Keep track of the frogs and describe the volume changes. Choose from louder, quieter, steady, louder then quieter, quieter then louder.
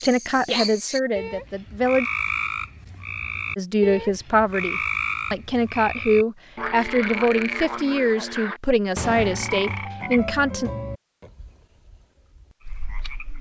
quieter.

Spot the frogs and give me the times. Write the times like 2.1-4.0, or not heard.
0.0-13.3.